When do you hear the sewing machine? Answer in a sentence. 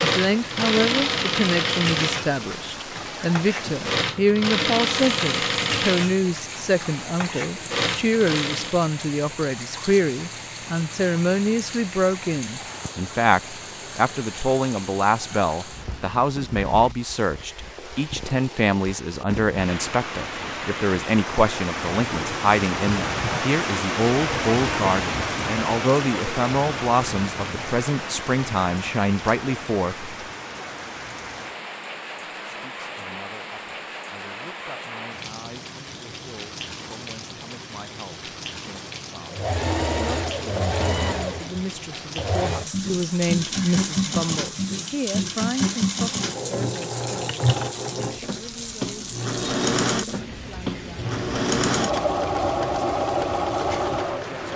The sewing machine can be heard from 0.0 to 8.8 s and from 39.3 to 54.5 s.